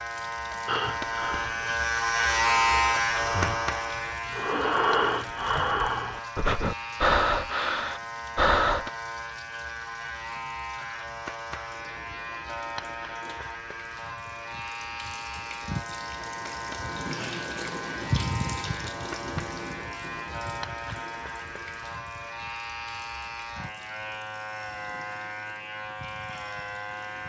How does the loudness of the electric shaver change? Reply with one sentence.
The volume of the electric shaver goes down.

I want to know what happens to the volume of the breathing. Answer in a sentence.
The loudness of the breathing goes up.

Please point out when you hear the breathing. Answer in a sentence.
You can hear the breathing from 0.7 to 8.9 s.